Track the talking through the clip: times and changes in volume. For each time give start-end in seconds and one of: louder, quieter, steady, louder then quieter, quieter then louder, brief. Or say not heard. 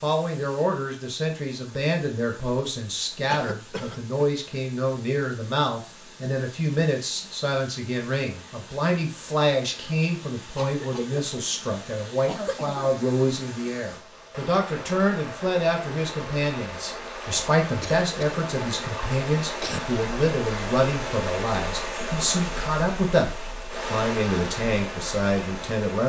0.0-26.0 steady.